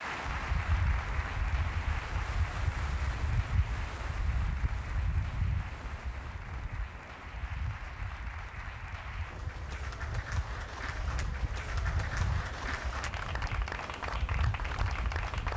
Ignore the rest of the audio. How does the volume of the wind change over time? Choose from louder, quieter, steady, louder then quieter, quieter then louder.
quieter then louder.